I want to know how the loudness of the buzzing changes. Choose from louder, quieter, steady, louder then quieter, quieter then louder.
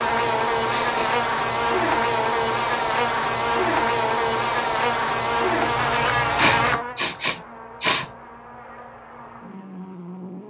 quieter.